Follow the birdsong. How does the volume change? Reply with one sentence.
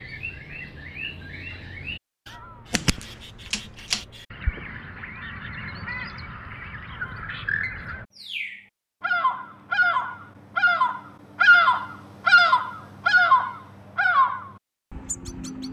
The volume of the birdsong goes up.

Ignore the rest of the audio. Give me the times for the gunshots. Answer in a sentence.
You can hear the gunshots from 2.7 to 4.0 s.